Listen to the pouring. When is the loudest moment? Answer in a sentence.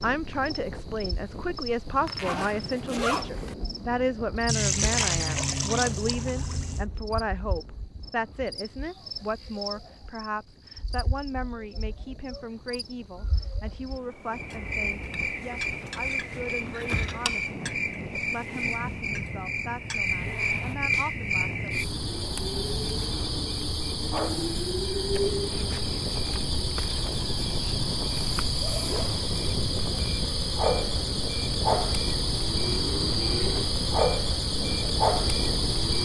The loudest moment of the pouring is at 5 seconds.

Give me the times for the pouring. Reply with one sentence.
The pouring can be heard from 4.5 to 6.8 s.